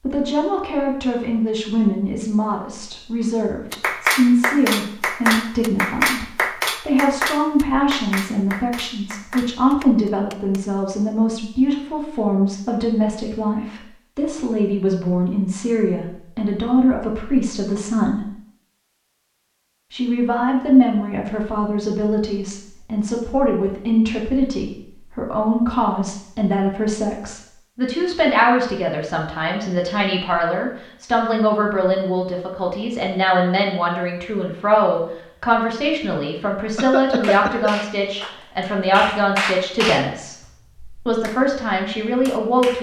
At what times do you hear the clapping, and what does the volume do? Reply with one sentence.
The clapping can be heard from 3.7 to 10.7 s, getting quieter; and from 37.0 to 42.7 s, getting louder then quieter.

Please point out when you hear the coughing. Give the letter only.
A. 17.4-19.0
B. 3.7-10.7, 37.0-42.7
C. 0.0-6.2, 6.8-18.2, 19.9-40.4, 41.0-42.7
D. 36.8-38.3
D.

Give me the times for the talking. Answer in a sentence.
The talking can be heard from 0.0 to 6.2 s, from 6.8 to 18.2 s, from 19.9 to 40.4 s and from 41.0 to 42.7 s.